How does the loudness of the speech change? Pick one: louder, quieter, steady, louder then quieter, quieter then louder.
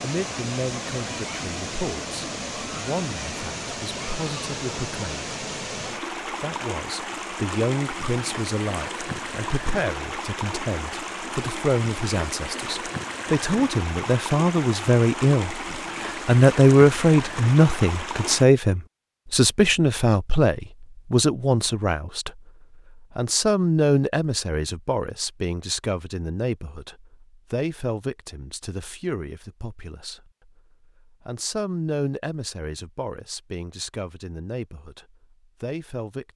louder then quieter.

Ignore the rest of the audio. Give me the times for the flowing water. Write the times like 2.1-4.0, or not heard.
0.0-18.4.